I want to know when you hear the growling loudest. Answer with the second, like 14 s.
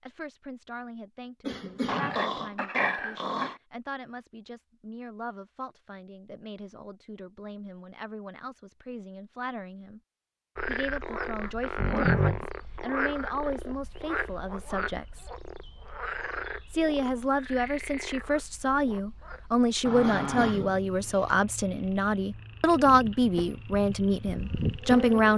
12 s.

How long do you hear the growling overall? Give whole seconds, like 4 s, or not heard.
3 s.